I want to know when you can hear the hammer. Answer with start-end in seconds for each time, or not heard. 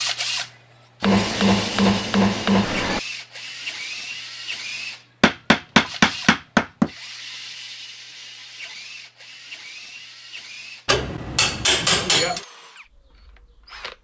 1.0-3.0, 5.2-6.9, 10.8-12.4.